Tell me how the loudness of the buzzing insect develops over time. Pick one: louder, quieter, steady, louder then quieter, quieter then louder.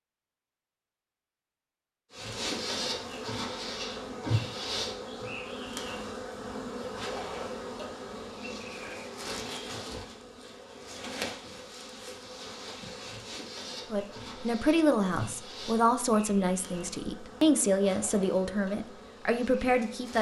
quieter.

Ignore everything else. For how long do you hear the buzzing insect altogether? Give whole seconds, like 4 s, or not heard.
18 s.